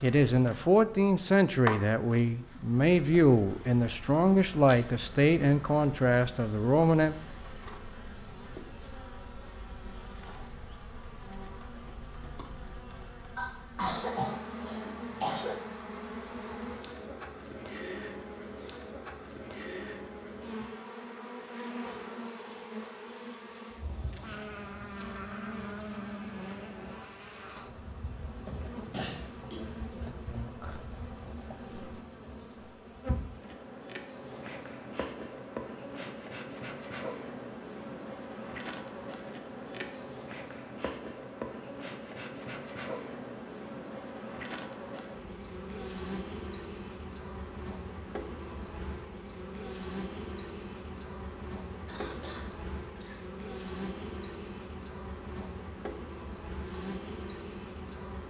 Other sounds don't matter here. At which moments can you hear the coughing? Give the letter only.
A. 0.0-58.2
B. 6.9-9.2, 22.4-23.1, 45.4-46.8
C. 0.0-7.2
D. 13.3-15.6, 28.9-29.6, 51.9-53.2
D.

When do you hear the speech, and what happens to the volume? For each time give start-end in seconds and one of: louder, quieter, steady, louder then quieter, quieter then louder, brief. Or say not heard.
0.0-7.2 steady.